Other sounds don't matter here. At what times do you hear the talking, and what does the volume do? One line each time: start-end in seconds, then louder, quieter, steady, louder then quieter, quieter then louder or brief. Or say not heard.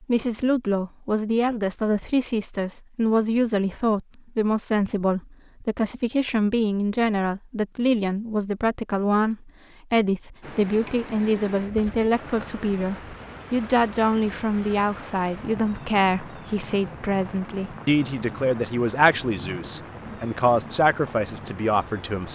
0.0-22.3 steady.